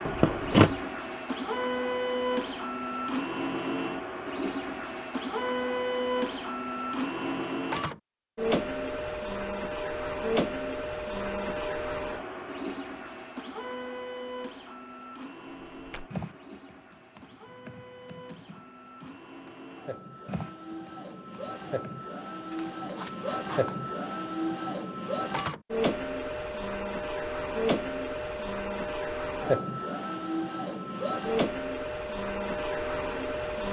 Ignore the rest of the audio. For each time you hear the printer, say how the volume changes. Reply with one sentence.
You can hear the printer from 0.0 to 33.6 s, getting quieter then louder.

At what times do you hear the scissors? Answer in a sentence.
The scissors can be heard from 0.1 to 0.8 s and from 22.5 to 23.9 s.